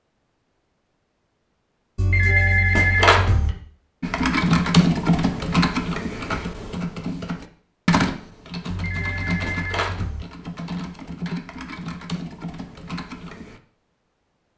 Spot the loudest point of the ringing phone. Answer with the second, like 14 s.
3 s.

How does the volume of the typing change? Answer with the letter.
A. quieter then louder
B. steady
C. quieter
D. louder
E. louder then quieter
C.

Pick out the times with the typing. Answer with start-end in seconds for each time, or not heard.
4.0-13.6.